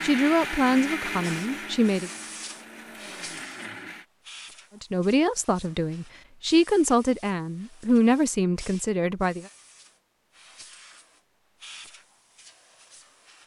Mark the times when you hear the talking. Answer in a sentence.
You can hear the talking from 0.0 to 2.1 s and from 4.8 to 9.4 s.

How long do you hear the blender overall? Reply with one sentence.
You can hear the blender for 4 seconds altogether.